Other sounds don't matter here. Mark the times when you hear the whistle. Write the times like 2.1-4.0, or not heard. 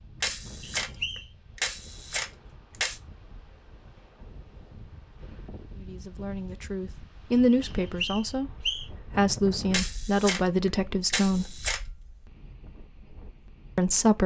0.6-1.2, 7.6-8.8.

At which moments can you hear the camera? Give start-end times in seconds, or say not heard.
0.2-3.0, 9.7-11.8.